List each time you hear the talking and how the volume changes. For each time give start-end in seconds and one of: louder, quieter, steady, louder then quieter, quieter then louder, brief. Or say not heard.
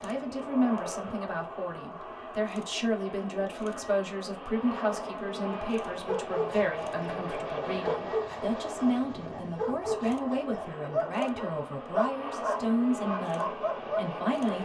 0.0-14.5 steady.